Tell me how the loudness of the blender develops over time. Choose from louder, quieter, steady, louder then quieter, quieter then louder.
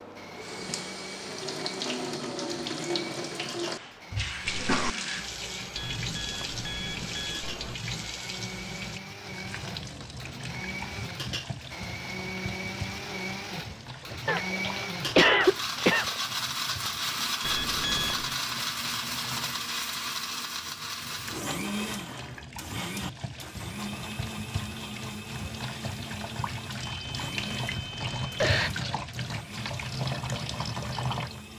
louder then quieter.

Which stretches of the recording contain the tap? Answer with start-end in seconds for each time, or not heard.
0.0-31.5.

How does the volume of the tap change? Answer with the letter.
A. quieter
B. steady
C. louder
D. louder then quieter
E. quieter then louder
E.